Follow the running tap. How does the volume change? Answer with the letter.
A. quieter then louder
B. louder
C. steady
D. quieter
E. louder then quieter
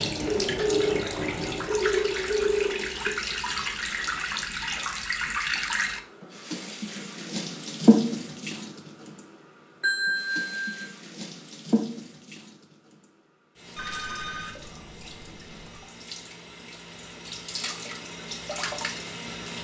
D.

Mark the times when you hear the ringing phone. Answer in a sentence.
The ringing phone can be heard from 0.2 to 2.9 s, from 9.8 to 10.8 s and from 13.8 to 15.8 s.